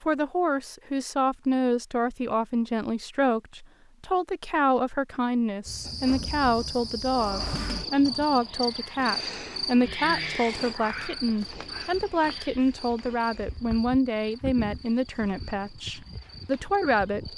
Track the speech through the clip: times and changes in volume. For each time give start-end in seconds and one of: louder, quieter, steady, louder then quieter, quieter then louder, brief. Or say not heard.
0.0-17.3 steady.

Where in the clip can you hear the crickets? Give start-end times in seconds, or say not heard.
5.7-17.3.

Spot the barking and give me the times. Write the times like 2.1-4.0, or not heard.
not heard.